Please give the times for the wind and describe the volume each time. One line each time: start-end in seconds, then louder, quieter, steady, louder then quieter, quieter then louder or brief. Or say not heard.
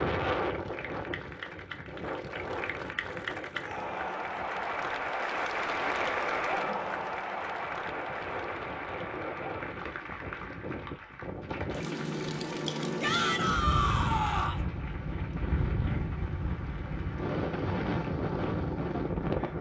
0.0-19.5 quieter then louder.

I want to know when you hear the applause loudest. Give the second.
6 s.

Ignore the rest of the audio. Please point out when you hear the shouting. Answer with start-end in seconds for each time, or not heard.
3.5-4.3, 13.0-14.6.